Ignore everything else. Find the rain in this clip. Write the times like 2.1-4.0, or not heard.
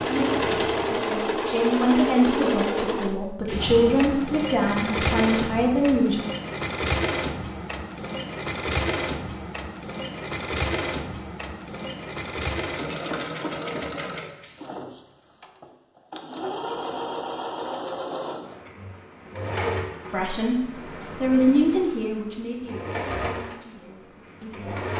not heard.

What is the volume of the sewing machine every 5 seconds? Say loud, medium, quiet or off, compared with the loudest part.
loud, loud, medium, medium, medium.